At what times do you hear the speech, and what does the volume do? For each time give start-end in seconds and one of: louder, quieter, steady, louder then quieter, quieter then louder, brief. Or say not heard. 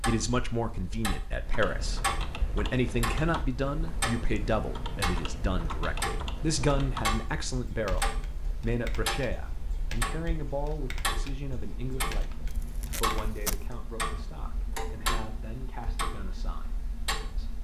0.1-17.5 quieter.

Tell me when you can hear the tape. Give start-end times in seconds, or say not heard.
12.5-13.6.